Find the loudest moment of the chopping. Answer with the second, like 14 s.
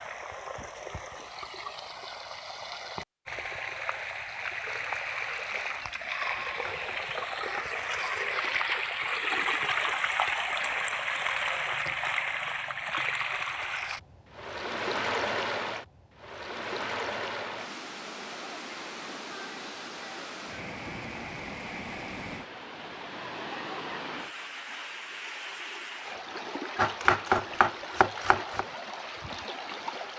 27 s.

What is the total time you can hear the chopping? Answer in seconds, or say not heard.
3 s.